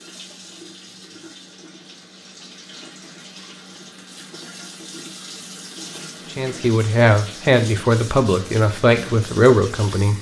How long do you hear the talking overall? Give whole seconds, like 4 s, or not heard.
4 s.